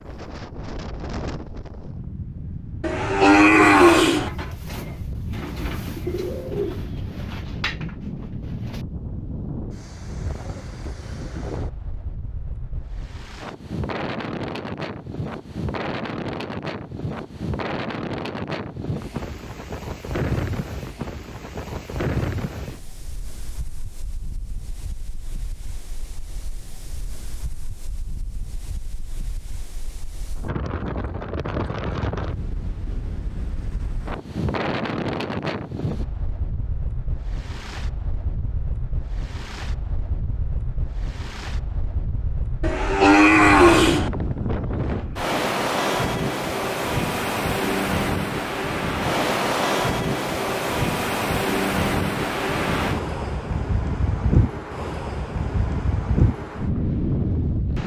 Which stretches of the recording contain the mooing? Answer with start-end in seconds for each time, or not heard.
2.8-4.3, 42.6-44.1.